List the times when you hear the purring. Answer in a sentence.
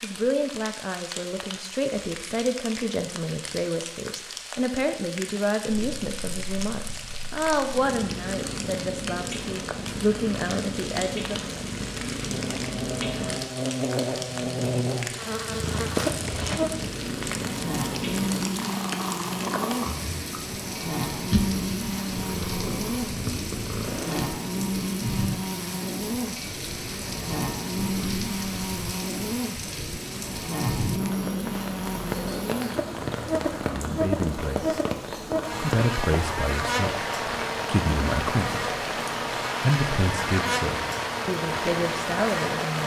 The purring can be heard from 5.7 to 24.3 s.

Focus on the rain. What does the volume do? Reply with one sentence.
The loudness of the rain goes up.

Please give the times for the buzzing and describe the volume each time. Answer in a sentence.
The buzzing can be heard from 12.2 to 42.8 s, at a steady volume.